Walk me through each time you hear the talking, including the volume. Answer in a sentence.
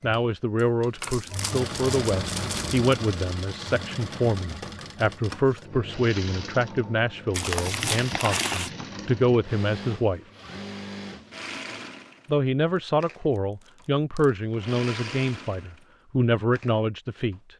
The talking can be heard from 0.0 to 10.2 s, at a steady volume; and from 12.2 to 17.4 s, getting quieter then louder.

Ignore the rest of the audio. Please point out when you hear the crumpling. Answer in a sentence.
You can hear the crumpling from 1.0 to 2.9 s, from 7.3 to 8.7 s and from 12.8 to 14.3 s.